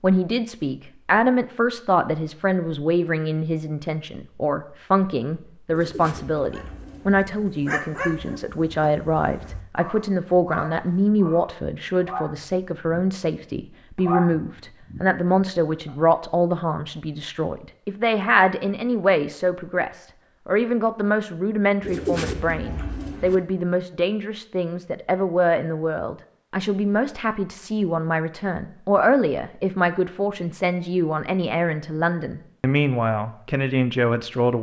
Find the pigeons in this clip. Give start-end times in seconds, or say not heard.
5.7-7.2, 21.8-23.4.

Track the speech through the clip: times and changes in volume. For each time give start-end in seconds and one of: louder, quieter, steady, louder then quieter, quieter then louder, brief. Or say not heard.
0.0-34.5 steady.